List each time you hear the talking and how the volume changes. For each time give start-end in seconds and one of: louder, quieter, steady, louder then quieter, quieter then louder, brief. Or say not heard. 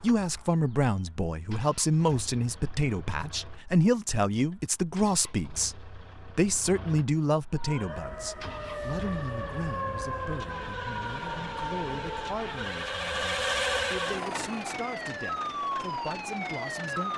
0.0-17.1 quieter.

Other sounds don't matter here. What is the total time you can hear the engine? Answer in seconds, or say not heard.
17 s.